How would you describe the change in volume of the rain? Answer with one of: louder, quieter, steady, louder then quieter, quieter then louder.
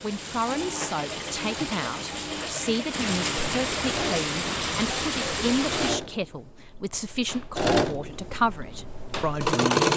louder.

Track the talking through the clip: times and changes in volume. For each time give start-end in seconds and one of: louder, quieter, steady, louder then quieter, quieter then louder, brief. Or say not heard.
0.0-9.8 steady.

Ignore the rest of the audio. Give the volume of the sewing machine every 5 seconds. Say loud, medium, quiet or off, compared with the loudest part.
medium, loud.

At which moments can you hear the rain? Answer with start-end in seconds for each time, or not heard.
0.0-6.0.